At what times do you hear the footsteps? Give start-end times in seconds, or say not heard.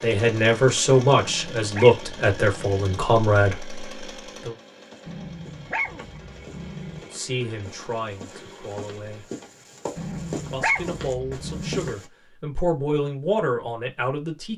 4.7-12.1.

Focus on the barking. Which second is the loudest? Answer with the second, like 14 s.
11 s.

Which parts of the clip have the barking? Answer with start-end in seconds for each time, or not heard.
1.1-3.0, 5.0-7.0, 9.9-11.9.